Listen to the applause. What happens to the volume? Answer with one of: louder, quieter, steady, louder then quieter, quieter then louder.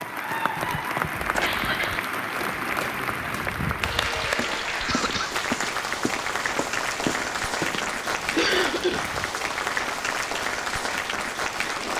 steady.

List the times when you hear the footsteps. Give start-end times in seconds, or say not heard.
1.1-9.3.